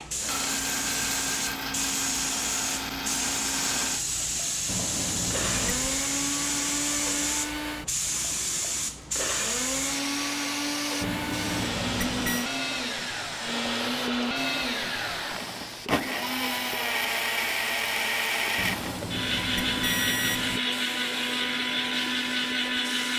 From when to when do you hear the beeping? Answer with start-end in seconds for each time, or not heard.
4.7-5.8, 11.0-12.4, 18.6-20.6.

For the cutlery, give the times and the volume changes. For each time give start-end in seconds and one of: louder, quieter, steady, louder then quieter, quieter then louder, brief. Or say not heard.
not heard.